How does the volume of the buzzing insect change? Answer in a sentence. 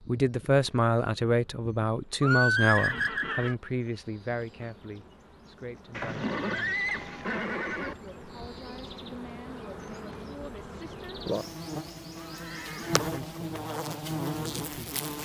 The loudness of the buzzing insect goes up.